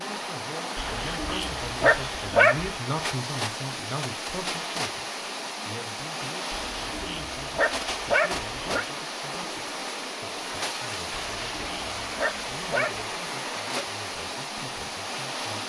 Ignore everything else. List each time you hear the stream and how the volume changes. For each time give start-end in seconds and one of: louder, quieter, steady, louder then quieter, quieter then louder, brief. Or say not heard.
0.0-15.6 steady.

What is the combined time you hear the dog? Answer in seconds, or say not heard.
6 s.